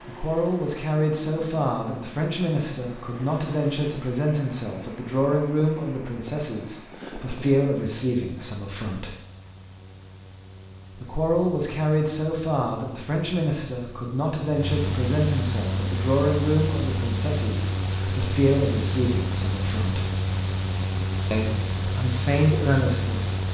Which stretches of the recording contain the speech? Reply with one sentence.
You can hear the speech from 0.1 to 9.1 s, from 11.0 to 20.1 s and from 21.3 to 23.4 s.